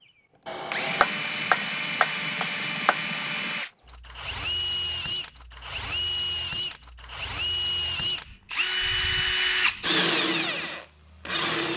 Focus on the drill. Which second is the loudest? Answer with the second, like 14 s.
10 s.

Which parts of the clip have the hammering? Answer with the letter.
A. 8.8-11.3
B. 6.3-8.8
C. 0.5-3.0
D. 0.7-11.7
C.